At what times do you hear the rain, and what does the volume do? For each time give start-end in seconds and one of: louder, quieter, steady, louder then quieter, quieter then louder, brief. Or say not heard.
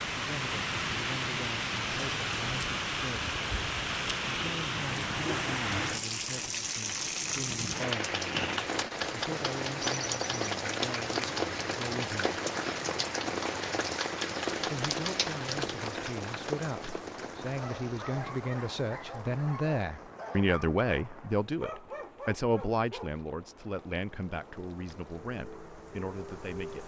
0.0-26.8 quieter.